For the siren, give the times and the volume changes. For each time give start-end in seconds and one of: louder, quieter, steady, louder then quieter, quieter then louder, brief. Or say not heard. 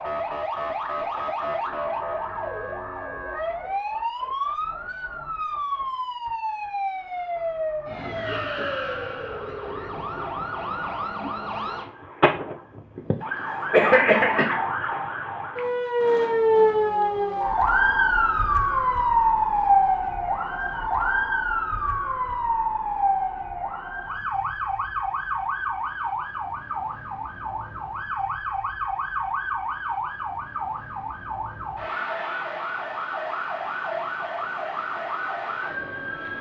0.0-36.3 louder then quieter.